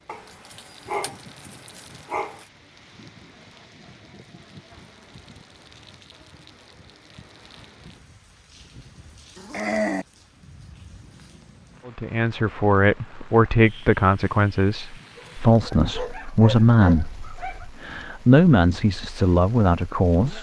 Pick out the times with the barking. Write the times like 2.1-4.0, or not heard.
0.1-2.5, 9.3-10.1, 15.2-17.6.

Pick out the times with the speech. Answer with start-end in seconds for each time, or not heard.
11.8-20.3.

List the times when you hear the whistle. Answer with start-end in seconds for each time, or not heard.
not heard.